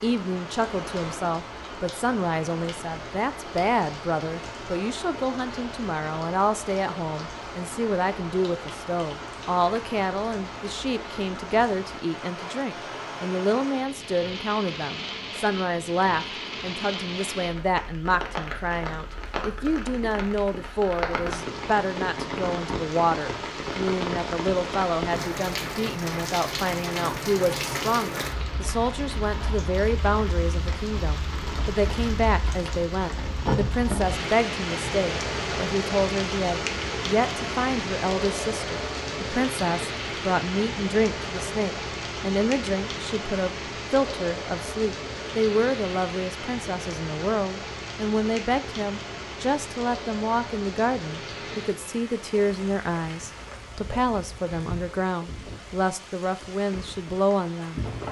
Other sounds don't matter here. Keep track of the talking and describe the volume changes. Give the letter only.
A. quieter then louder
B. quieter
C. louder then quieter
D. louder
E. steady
E.